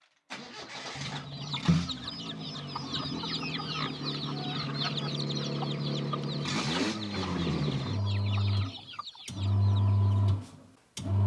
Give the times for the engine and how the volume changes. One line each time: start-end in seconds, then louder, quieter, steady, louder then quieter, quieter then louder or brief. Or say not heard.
0.0-11.2 louder.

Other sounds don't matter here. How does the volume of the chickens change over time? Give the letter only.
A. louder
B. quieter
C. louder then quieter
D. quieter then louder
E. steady
B.